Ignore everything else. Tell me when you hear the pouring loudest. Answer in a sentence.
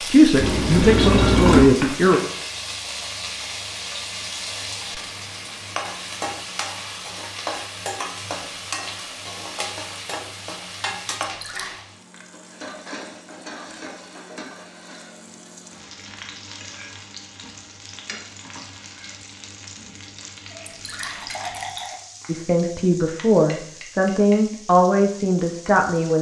The volume of the pouring peaks at 1 second.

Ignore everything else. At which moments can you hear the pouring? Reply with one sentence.
The pouring can be heard from 0.4 to 1.7 s, from 11.2 to 11.8 s and from 20.6 to 21.9 s.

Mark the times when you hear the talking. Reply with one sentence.
The talking can be heard from 0.1 to 2.2 s and from 22.2 to 26.1 s.